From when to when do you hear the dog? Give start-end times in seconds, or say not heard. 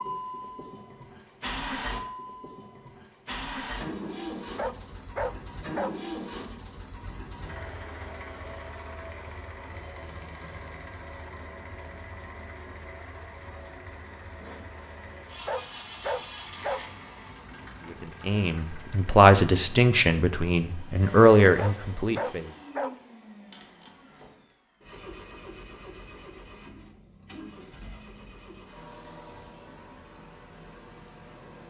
4.5-6.0, 15.4-16.8, 21.6-22.9.